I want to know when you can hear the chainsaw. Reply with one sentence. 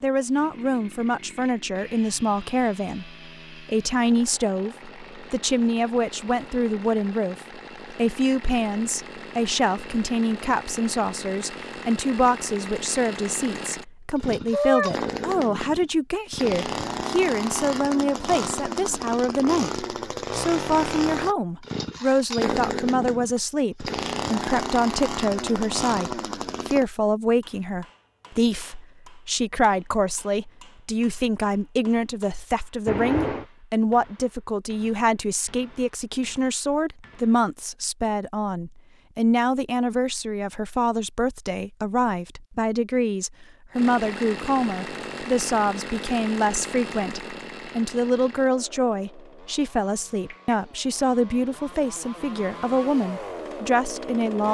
You can hear the chainsaw from 0.1 to 26.9 s and from 43.7 to 54.5 s.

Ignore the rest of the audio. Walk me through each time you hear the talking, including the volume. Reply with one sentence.
The talking can be heard from 0.0 to 54.5 s, at a steady volume.